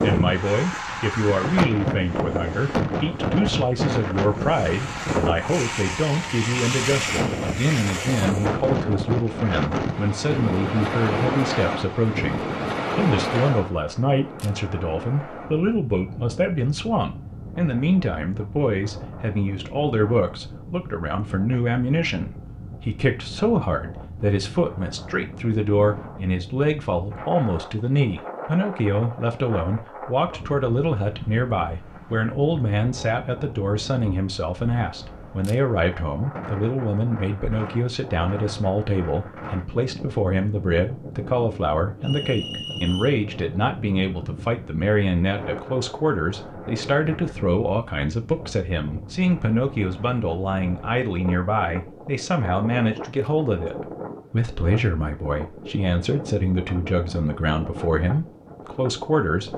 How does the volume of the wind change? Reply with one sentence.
The volume of the wind goes down.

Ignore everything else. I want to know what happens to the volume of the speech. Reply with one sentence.
The loudness of the speech stays about the same.